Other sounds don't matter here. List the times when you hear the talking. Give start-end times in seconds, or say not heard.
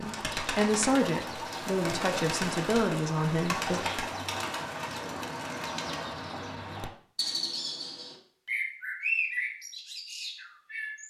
0.0-3.9.